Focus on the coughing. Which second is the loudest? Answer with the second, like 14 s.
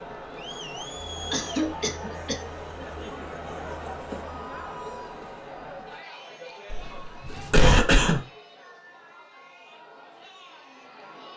8 s.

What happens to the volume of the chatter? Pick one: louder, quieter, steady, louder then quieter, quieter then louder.
quieter.